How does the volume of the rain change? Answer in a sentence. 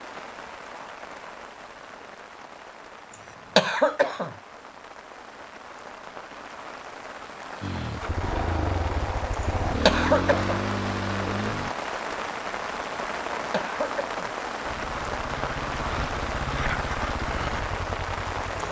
The loudness of the rain goes up.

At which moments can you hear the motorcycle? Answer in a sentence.
The motorcycle can be heard from 7.6 to 11.8 s and from 14.7 to 18.6 s.